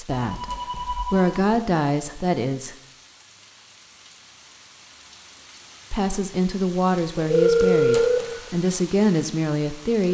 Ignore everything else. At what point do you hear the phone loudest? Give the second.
8 s.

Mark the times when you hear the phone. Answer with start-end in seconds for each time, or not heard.
0.1-1.6, 7.2-8.4.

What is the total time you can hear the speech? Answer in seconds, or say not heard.
7 s.